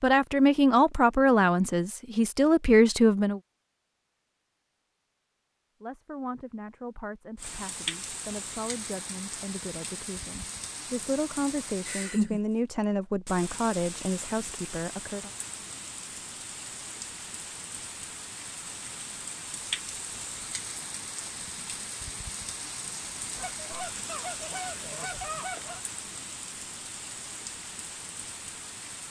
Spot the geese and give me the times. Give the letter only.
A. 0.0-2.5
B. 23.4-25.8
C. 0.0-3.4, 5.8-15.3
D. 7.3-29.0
B.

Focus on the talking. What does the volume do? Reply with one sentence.
The volume of the talking goes down, then up.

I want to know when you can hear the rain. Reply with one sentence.
The rain can be heard from 7.3 to 29.0 s.